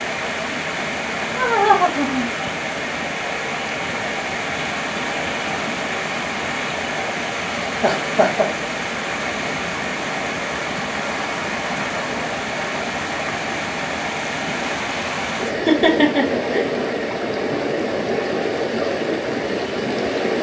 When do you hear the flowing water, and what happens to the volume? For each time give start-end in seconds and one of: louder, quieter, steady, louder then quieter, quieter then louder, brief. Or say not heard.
0.0-20.3 steady.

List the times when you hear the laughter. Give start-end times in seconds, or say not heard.
1.4-2.3, 7.7-8.4, 15.4-16.6.